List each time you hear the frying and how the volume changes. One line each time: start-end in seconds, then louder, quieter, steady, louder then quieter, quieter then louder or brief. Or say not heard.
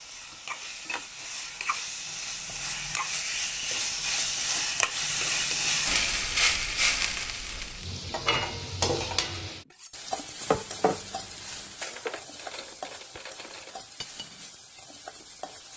0.0-15.7 louder then quieter.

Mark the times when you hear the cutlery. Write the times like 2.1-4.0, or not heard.
8.1-14.6.